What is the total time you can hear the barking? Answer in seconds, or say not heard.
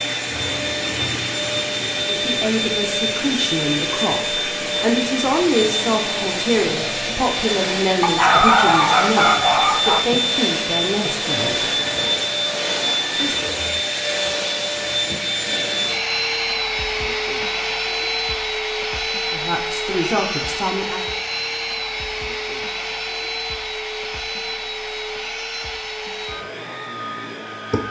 2 s.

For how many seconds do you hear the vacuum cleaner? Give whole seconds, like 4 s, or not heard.
28 s.